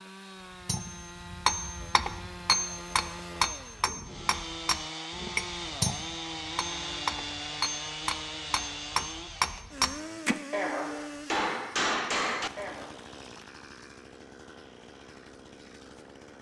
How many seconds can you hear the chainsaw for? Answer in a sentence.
You can hear the chainsaw for 16 seconds altogether.